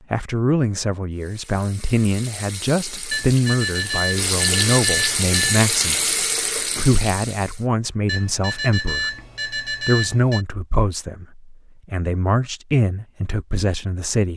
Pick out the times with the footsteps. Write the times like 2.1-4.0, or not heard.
not heard.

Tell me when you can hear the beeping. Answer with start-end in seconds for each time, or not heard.
3.1-5.6, 8.1-10.4.